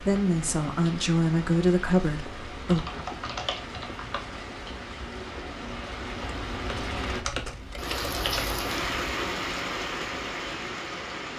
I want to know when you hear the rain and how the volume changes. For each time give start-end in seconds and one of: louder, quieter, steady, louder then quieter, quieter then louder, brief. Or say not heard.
0.0-11.3 louder.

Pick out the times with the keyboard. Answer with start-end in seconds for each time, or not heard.
2.7-4.2, 6.2-8.6.